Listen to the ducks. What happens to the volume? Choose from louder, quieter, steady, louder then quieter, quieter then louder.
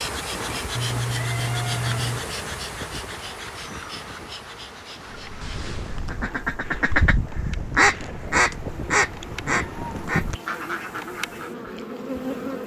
louder then quieter.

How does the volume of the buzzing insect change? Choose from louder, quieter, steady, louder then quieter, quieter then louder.
quieter then louder.